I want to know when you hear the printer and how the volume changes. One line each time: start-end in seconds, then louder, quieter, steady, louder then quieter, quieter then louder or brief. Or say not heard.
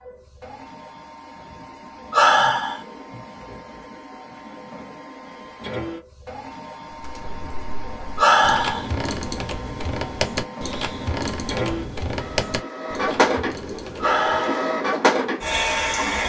0.0-16.2 louder.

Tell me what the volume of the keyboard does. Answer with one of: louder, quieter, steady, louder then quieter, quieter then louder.
louder then quieter.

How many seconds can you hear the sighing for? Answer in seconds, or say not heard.
2 s.